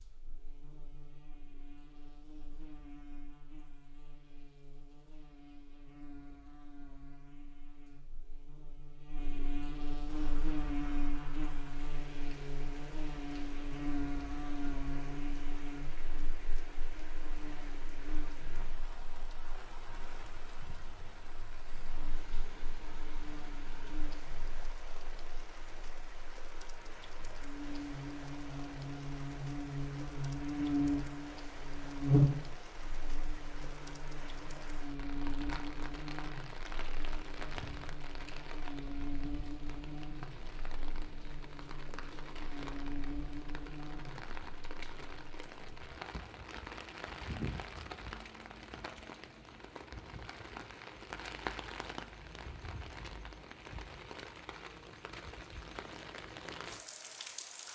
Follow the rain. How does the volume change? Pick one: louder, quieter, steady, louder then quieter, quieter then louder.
louder.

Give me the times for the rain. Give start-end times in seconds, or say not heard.
10.1-57.7.